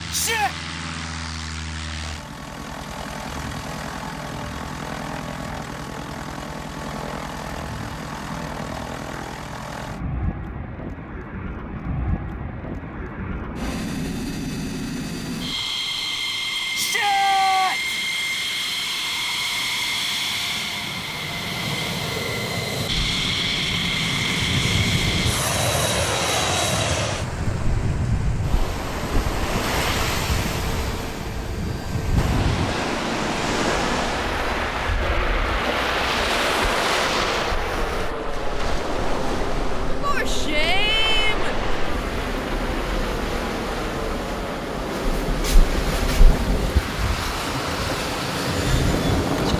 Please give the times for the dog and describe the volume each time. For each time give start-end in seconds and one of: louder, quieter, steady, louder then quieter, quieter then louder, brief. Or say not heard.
not heard.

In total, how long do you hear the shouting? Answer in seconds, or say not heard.
3 s.